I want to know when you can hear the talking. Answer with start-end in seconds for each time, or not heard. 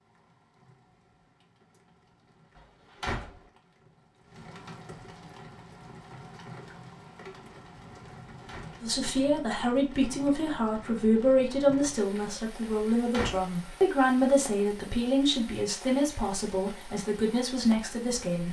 8.8-18.4.